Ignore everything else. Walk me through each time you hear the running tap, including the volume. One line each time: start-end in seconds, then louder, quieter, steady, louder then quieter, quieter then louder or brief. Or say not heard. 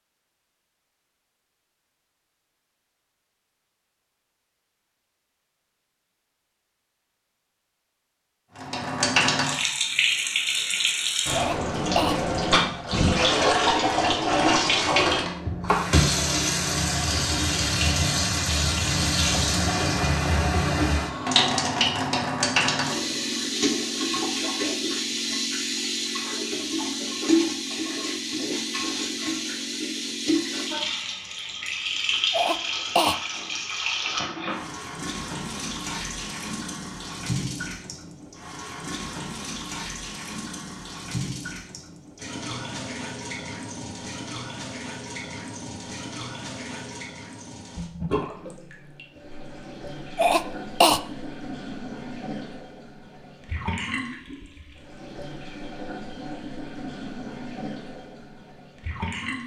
8.6-59.4 quieter.